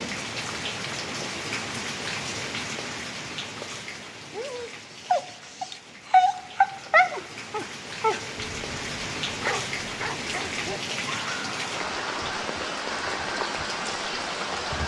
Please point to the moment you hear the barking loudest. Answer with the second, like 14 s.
6 s.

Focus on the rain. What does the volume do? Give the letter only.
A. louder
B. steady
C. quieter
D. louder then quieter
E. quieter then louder
E.